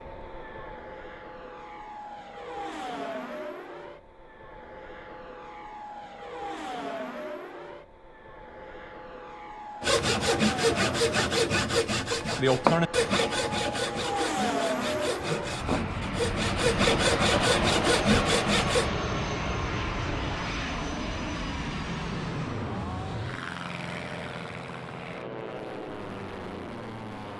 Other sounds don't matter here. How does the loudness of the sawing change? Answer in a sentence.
The loudness of the sawing goes down, then up.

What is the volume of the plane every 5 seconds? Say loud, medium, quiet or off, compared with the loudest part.
medium, medium, loud, loud, loud, medium.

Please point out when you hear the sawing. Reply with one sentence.
The sawing can be heard from 9.8 to 18.9 s.